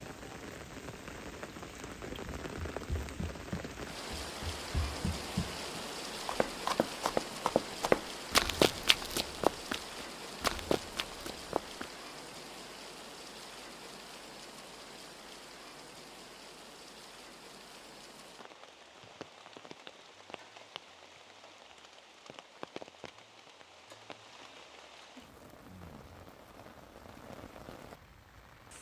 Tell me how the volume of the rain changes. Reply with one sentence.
The loudness of the rain goes down.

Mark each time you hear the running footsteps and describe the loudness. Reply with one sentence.
You can hear the running footsteps from 2.2 to 11.9 s, getting louder then quieter.